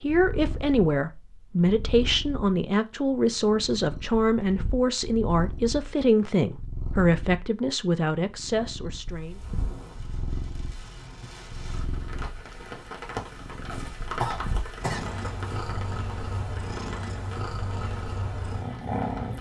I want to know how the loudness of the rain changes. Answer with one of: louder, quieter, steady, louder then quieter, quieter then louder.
louder then quieter.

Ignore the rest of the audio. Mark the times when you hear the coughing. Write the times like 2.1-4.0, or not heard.
13.7-15.1.